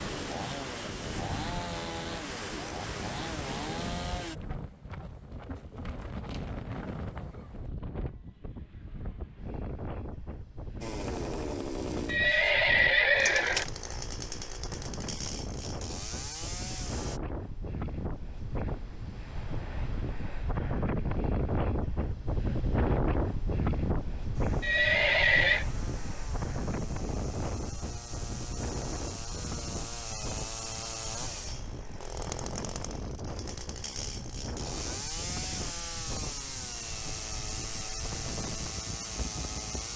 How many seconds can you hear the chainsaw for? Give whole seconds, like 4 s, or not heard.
26 s.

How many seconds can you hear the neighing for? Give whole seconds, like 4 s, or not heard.
3 s.